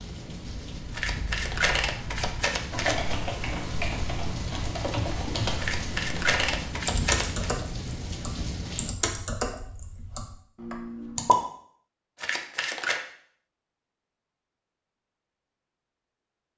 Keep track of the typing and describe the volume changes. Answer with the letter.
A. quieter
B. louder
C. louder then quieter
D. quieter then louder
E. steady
B.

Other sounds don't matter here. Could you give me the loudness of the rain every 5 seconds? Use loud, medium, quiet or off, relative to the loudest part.
loud, loud, off, off.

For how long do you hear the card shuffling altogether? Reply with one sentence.
The card shuffling can be heard for 5 seconds in total.